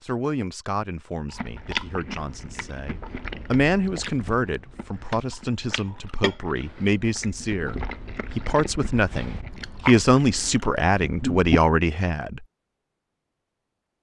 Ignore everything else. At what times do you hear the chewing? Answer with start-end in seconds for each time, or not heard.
1.3-11.6.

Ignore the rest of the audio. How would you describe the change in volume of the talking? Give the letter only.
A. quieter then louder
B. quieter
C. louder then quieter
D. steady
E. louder
E.